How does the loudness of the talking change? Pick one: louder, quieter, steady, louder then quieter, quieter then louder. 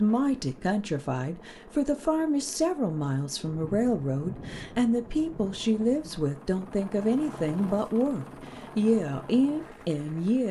steady.